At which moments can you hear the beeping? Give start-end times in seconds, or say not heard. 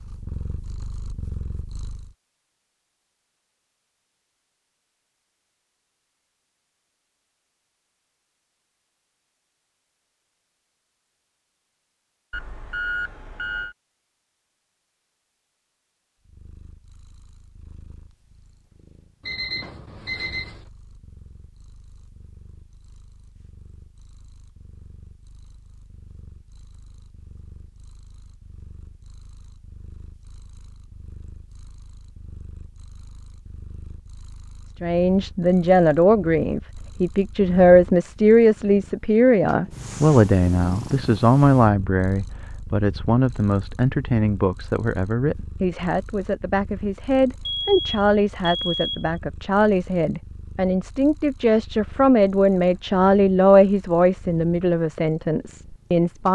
12.3-13.8, 19.2-20.6, 47.5-49.1.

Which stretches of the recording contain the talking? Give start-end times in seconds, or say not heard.
34.8-56.2.